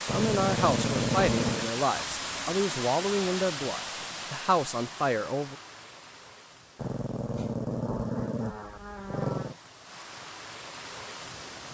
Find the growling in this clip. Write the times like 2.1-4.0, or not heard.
0.1-1.7, 6.8-9.6.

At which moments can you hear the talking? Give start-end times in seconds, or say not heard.
0.0-5.5.